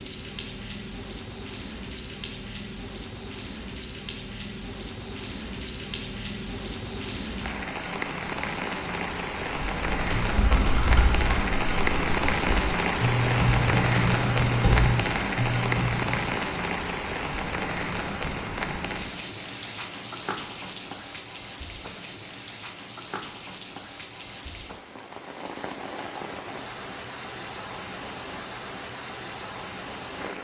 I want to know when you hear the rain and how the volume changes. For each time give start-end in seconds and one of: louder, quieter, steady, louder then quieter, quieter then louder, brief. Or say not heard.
0.0-30.3 louder then quieter.